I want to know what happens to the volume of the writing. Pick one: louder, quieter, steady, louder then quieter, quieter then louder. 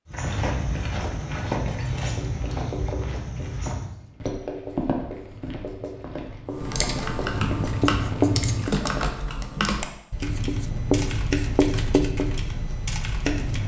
louder.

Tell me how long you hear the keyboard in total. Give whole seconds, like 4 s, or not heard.
7 s.